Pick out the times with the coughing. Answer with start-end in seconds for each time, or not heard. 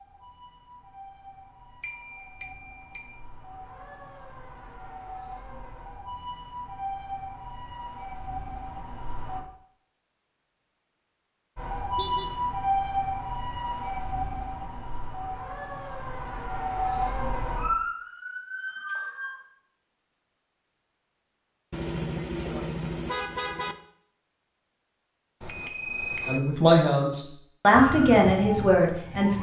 not heard.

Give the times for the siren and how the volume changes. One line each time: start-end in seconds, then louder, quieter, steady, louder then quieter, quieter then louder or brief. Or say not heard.
0.0-9.4 louder
11.6-19.4 quieter then louder
27.7-29.3 brief.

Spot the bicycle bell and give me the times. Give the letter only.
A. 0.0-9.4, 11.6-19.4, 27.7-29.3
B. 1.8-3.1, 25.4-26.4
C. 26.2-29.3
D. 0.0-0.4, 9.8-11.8
B.